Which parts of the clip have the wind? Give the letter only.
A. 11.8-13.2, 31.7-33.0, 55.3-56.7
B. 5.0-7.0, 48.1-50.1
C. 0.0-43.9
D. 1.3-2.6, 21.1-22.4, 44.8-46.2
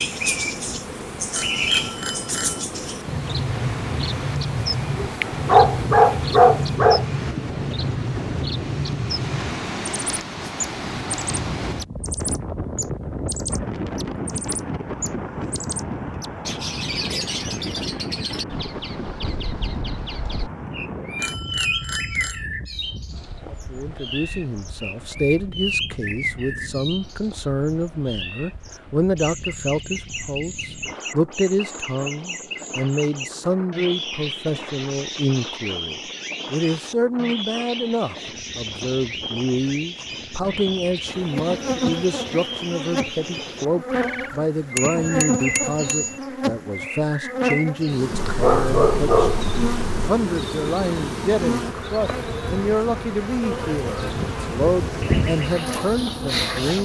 C.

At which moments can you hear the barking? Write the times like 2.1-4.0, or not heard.
5.0-7.0, 48.1-50.1.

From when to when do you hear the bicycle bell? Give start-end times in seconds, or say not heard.
1.3-2.6, 21.1-22.4, 44.8-46.2.